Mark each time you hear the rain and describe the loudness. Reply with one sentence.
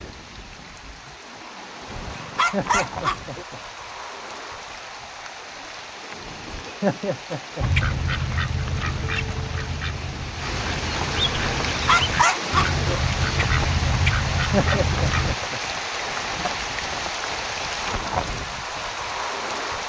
The rain can be heard from 0.0 to 19.8 s, getting louder.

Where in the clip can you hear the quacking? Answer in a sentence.
You can hear the quacking from 7.6 to 15.3 s.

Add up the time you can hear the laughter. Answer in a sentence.
The laughter can be heard for 4 seconds in total.